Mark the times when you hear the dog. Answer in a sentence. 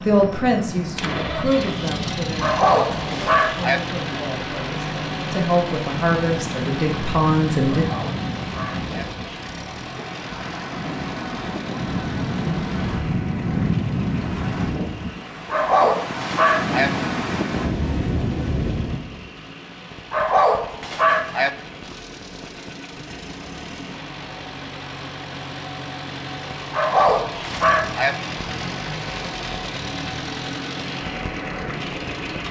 The dog can be heard from 2.4 to 3.8 s, from 7.7 to 9.1 s, from 15.5 to 16.9 s, from 20.1 to 21.5 s and from 26.7 to 28.1 s.